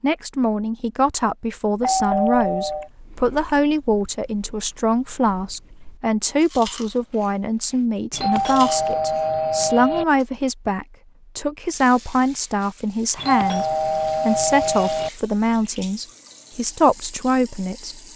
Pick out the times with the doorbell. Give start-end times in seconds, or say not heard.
1.8-2.9, 8.1-10.1, 13.2-15.1.